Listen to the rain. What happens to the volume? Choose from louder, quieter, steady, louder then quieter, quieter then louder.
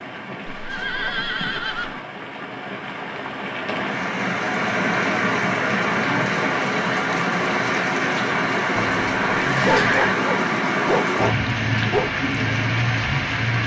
louder.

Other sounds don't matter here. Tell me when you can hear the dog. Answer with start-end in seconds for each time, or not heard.
9.5-12.1.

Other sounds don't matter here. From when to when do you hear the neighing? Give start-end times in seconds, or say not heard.
0.5-2.0, 8.8-10.2.